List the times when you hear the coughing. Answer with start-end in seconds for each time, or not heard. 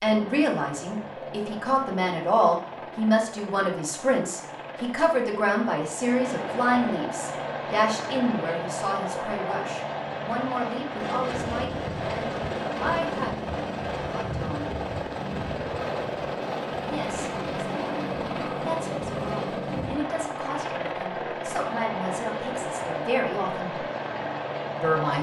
not heard.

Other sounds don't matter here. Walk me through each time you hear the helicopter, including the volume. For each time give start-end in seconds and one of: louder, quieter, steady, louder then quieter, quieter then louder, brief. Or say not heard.
0.0-25.1 louder.